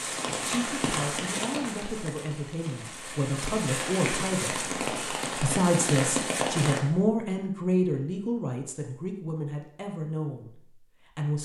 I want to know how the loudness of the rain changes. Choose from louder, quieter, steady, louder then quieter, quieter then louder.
quieter then louder.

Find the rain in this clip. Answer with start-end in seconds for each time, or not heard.
0.0-6.8.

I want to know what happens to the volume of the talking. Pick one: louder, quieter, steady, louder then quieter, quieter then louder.
louder then quieter.